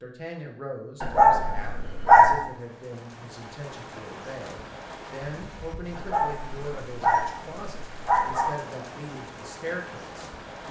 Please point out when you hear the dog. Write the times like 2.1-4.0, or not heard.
1.0-2.4, 6.0-8.5.